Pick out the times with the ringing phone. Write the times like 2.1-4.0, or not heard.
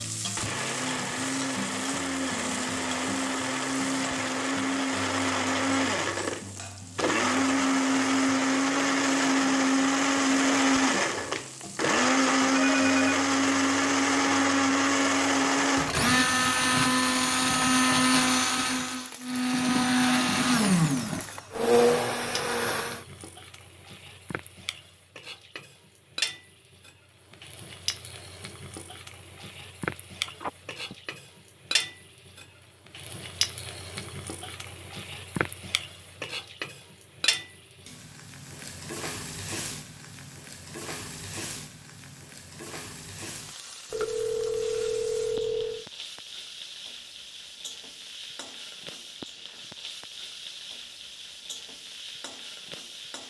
12.6-13.2, 30.2-30.9, 43.9-45.9.